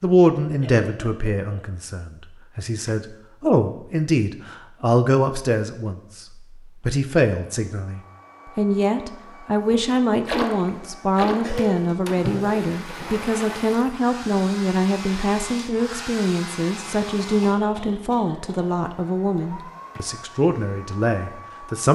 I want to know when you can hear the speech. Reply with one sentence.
The speech can be heard from 0.0 to 21.9 s.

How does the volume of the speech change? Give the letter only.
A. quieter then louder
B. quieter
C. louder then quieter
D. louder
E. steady
E.